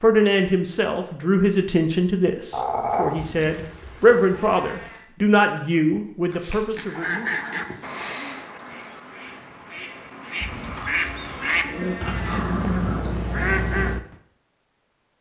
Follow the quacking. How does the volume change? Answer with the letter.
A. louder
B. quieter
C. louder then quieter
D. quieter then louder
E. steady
D.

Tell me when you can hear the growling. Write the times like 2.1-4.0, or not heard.
2.5-3.5, 6.3-8.2, 11.6-13.3.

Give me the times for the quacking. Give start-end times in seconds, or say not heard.
6.8-14.0.